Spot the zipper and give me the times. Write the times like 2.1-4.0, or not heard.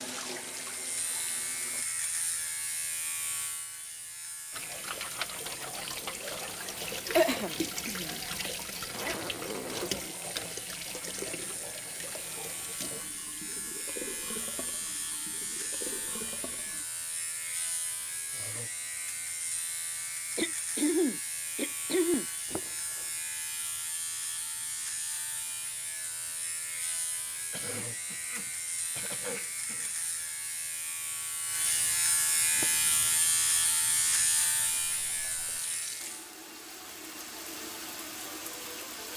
8.8-9.9, 22.4-23.1, 32.5-33.1.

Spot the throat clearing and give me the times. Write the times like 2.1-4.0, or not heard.
7.2-8.2, 20.4-22.6, 27.5-29.9.